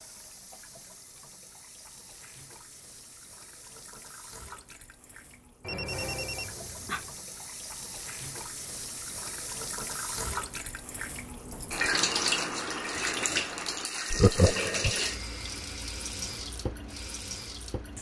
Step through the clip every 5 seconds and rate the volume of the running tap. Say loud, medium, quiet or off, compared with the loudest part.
quiet, medium, loud, medium.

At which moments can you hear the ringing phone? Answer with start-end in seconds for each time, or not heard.
5.6-7.2.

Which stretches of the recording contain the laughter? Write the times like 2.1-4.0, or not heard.
14.1-15.0.